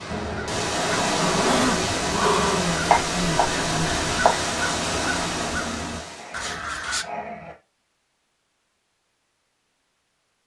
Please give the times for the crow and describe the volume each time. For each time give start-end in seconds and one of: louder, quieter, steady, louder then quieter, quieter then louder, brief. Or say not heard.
0.1-7.0 steady.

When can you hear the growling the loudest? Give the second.
2 s.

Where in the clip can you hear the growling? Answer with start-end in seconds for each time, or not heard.
0.9-2.8, 6.0-7.5.